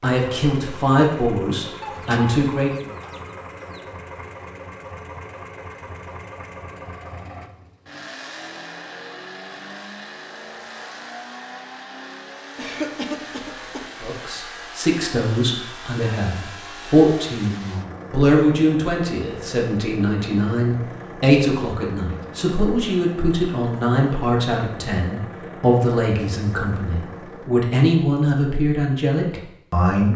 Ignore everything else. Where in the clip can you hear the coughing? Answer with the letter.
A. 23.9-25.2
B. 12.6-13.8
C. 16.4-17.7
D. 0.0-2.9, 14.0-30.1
B.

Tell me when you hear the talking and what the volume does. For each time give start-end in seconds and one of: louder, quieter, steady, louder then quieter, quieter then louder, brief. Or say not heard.
0.0-2.9 brief
14.0-30.1 steady.